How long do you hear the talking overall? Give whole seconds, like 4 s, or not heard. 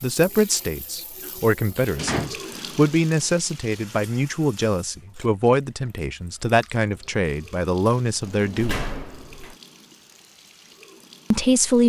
9 s.